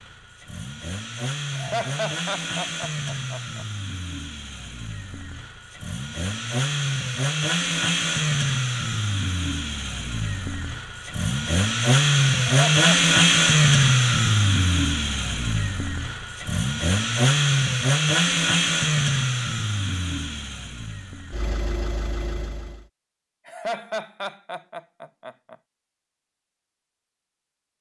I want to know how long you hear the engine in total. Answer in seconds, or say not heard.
23 s.